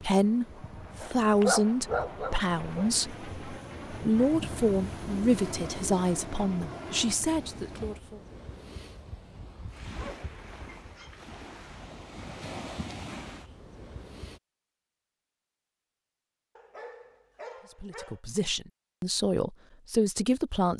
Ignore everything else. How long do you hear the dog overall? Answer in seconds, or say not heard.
5 s.